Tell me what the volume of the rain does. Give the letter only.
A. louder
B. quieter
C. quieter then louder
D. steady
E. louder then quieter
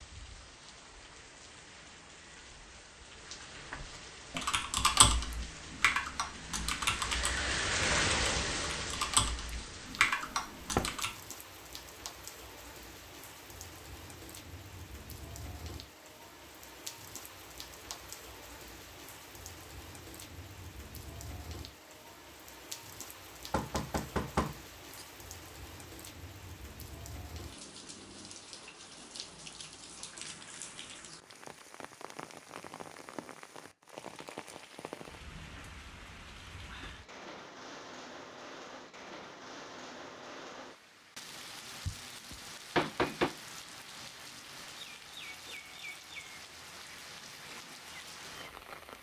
B.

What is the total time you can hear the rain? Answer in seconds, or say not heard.
49 s.